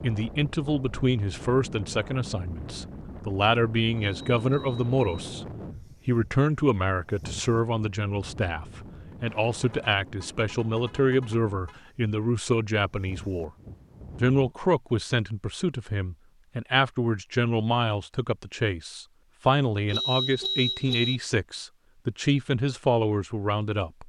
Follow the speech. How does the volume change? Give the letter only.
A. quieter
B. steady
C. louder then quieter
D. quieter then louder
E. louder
B.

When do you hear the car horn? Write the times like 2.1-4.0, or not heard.
4.0-5.2, 9.5-11.8, 19.9-21.2.